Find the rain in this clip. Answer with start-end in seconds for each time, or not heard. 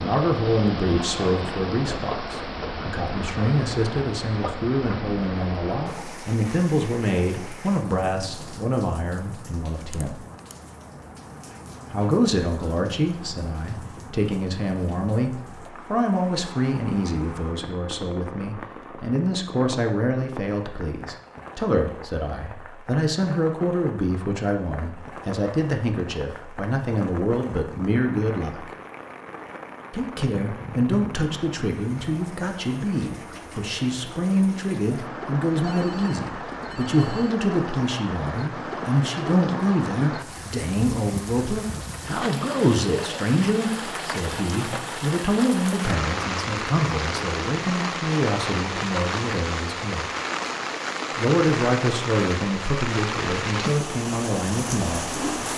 0.0-55.5.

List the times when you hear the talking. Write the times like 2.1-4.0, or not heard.
0.0-10.2, 11.9-28.7, 29.9-50.0, 51.1-55.2.